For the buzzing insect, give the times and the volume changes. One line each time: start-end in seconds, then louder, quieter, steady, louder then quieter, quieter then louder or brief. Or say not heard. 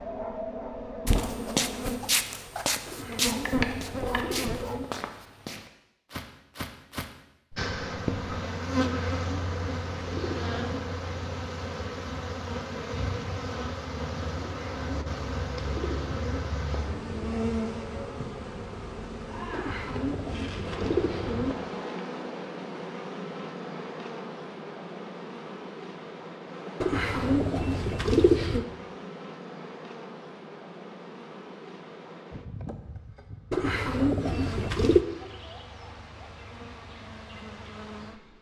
0.0-4.8 quieter then louder
7.5-38.3 quieter.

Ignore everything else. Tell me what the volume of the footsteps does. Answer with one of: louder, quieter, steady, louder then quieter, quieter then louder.
quieter.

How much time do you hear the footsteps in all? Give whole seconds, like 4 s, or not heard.
7 s.